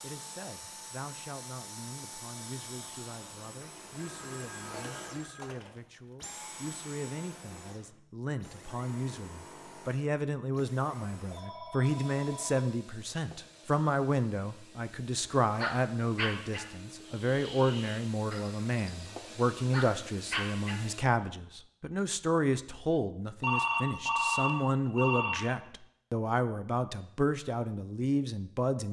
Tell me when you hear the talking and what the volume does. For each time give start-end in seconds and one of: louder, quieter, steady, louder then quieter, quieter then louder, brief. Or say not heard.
0.0-28.8 louder.